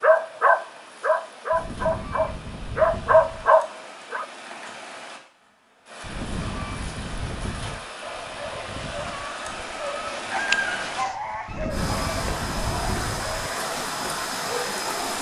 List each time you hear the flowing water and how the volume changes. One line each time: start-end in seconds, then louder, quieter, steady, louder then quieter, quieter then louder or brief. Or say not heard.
0.0-15.1 louder.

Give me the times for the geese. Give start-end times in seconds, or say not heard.
1.5-3.5, 6.0-7.8, 11.4-13.5.